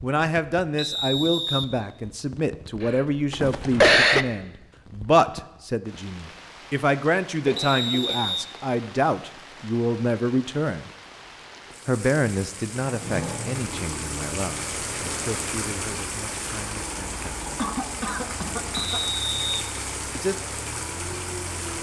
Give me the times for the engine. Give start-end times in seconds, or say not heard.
12.8-21.7.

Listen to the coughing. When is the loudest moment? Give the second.
4 s.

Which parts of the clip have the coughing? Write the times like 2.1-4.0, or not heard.
2.8-4.2, 7.5-8.3, 17.6-19.0.